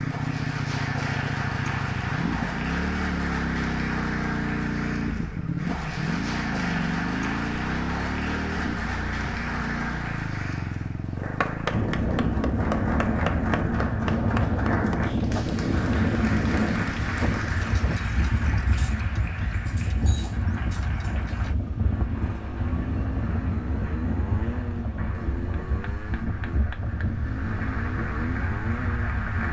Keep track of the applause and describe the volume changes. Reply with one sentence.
The volume of the applause goes down.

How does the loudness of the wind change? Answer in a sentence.
The loudness of the wind goes down.